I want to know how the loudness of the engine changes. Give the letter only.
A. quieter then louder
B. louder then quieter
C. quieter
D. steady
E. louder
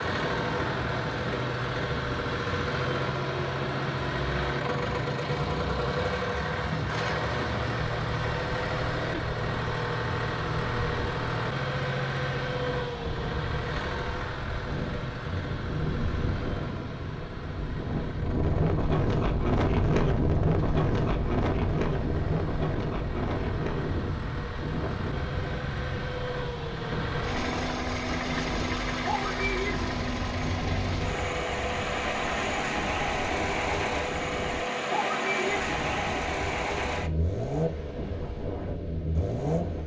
A.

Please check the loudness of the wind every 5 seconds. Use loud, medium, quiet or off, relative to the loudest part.
medium, medium, medium, loud, loud, medium, medium, medium.